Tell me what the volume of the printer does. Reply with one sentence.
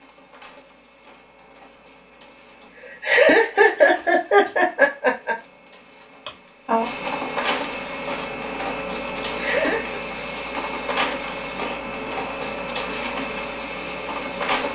The loudness of the printer goes up.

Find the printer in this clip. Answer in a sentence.
You can hear the printer from 0.0 to 14.7 s.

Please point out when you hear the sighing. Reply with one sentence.
The sighing can be heard from 6.2 to 6.9 s.